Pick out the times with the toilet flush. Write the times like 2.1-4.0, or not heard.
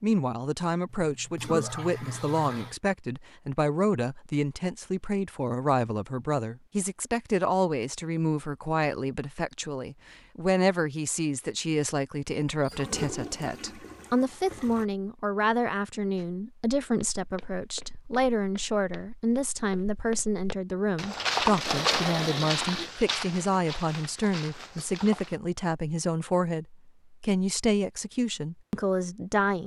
0.9-2.8, 12.6-14.8, 21.5-22.9.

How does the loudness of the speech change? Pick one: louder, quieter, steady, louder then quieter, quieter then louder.
steady.